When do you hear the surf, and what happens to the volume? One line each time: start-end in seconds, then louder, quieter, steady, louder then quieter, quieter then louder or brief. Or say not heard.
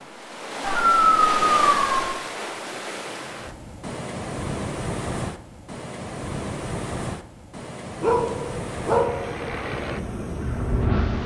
0.0-11.2 quieter.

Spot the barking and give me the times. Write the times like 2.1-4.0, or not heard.
0.6-2.0, 8.0-9.4.